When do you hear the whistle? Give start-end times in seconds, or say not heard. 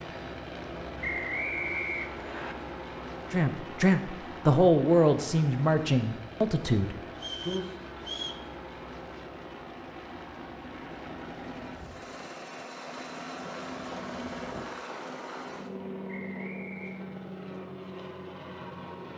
1.0-2.5, 7.2-8.4, 16.1-17.1.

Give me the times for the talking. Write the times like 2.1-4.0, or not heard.
3.3-7.8.